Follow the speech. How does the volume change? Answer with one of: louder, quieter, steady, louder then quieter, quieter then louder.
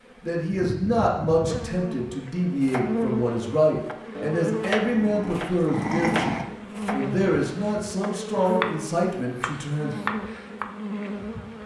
steady.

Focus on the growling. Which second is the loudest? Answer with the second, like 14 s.
6 s.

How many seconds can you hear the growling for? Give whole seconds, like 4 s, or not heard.
2 s.